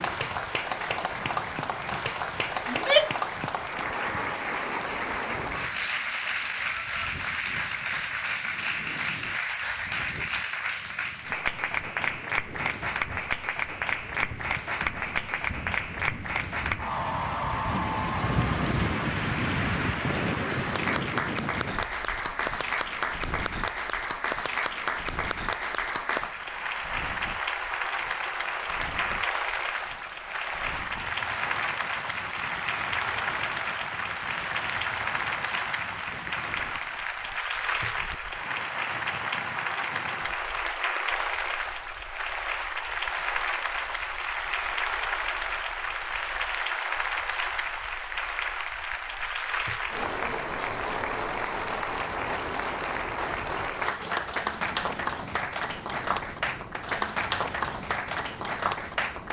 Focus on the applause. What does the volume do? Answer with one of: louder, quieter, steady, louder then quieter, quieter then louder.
steady.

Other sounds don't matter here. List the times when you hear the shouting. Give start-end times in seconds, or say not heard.
2.6-3.2.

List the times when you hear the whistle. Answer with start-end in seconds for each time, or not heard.
not heard.